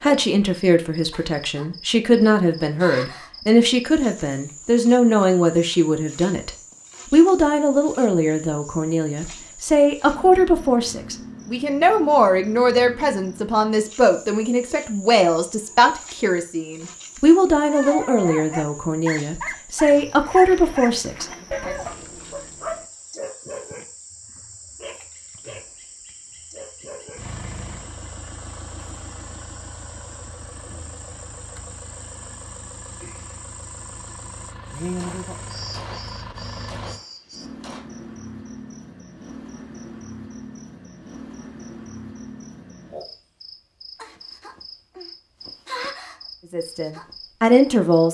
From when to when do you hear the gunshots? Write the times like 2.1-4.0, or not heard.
35.0-37.9.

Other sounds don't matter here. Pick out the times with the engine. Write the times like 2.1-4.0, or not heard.
27.1-37.0.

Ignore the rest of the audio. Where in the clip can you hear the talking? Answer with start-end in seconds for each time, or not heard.
0.0-6.5, 7.1-21.8, 46.5-48.0.